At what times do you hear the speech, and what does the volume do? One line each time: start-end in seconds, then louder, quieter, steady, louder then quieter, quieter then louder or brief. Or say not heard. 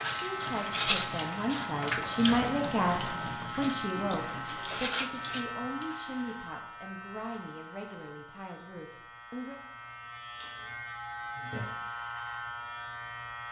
0.1-9.6 louder then quieter.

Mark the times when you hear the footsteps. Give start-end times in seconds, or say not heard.
not heard.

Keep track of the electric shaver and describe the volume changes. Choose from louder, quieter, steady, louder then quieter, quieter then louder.
quieter then louder.